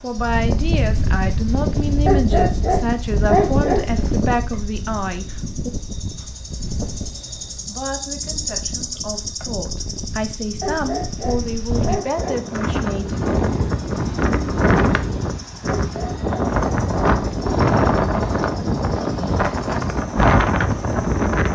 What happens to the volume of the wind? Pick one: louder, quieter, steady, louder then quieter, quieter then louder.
quieter then louder.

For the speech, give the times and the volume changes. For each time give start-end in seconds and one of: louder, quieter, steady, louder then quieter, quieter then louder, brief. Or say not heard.
0.0-5.7 steady
7.7-13.2 louder.